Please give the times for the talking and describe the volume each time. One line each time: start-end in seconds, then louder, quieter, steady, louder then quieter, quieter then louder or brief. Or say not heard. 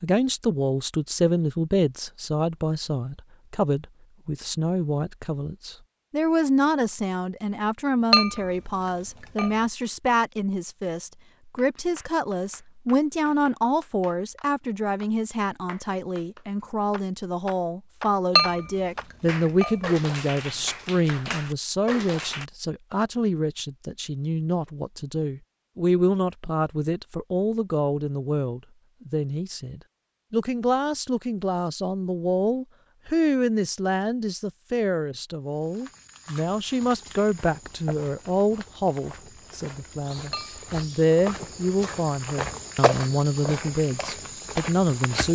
0.0-45.3 steady.